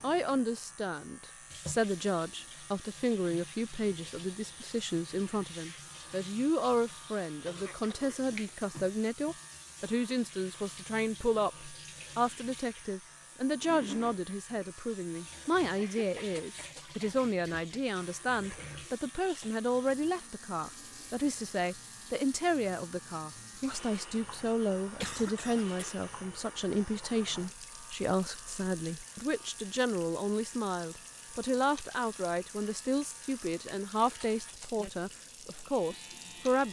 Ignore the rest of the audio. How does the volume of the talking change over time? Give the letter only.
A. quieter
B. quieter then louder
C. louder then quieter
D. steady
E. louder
D.